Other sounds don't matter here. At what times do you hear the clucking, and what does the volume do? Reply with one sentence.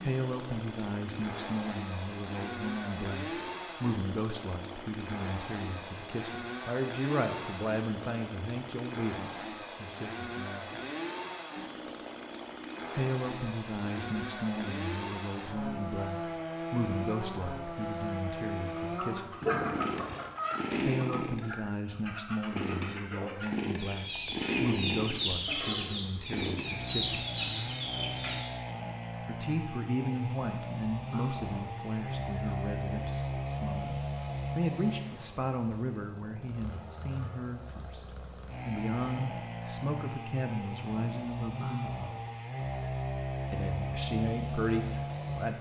You can hear the clucking from 18.9 to 28.6 s, getting quieter then louder.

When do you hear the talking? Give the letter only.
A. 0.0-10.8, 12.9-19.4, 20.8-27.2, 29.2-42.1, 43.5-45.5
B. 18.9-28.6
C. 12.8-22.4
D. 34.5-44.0
A.